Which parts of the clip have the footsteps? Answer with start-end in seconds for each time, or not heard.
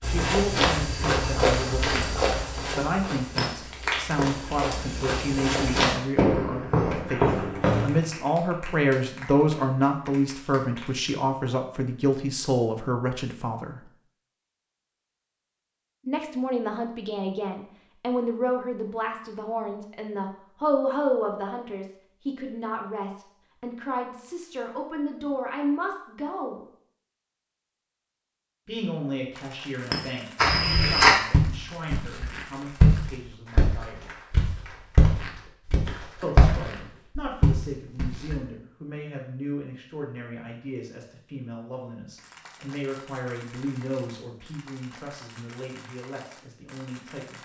0.0-8.0, 30.4-38.4.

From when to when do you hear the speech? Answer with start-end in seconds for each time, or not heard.
0.0-13.8, 16.1-26.6, 28.6-34.1, 36.2-47.4.